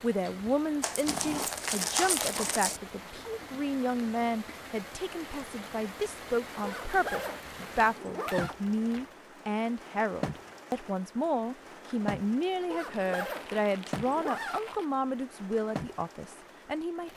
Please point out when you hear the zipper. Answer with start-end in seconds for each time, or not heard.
1.1-2.6, 6.6-8.6, 12.7-14.6.